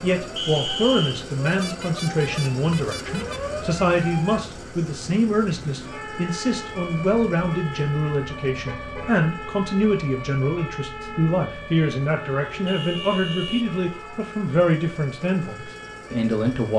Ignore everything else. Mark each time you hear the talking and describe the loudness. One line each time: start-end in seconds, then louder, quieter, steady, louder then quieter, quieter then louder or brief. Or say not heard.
0.0-16.7 steady.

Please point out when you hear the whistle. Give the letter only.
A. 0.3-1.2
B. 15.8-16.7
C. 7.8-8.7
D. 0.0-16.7
A.